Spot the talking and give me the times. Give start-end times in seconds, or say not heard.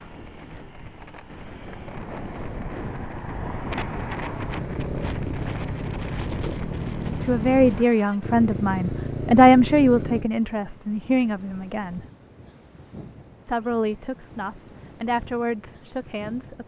7.2-12.1, 13.4-16.6.